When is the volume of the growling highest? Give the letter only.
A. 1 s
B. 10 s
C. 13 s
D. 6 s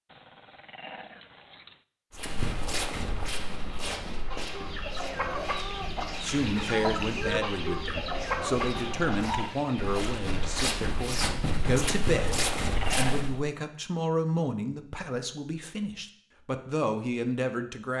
C.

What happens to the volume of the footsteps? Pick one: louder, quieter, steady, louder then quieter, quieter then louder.
quieter then louder.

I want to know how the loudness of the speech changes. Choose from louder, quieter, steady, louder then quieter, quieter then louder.
steady.